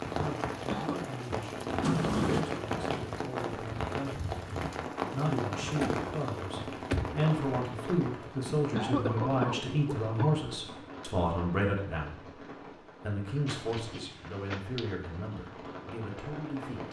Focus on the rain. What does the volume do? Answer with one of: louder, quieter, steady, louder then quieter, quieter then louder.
quieter.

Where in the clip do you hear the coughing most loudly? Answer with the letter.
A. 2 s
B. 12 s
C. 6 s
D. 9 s
D.